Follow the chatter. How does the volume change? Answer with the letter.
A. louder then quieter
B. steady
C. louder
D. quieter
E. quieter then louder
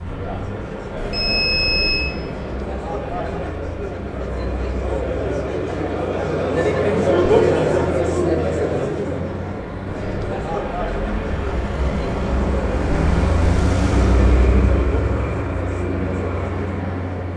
A.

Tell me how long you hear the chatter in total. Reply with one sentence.
The chatter can be heard for 17 seconds in total.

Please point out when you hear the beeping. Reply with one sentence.
You can hear the beeping from 0.9 to 2.0 s.